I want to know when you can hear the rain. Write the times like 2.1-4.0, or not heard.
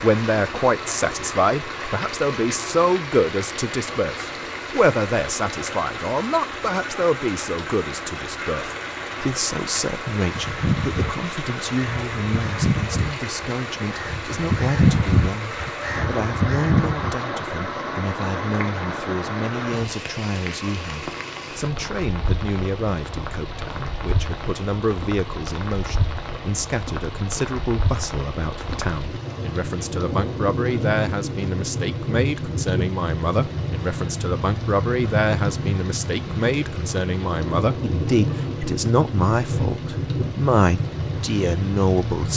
0.0-42.3.